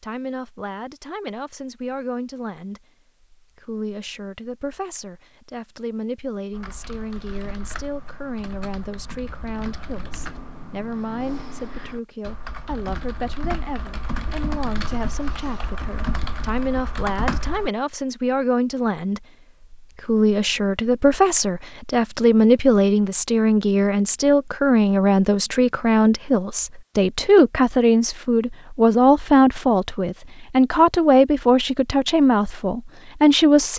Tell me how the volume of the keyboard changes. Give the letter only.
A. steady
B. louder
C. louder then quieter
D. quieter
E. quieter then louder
B.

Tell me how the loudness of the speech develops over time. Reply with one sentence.
The volume of the speech goes up.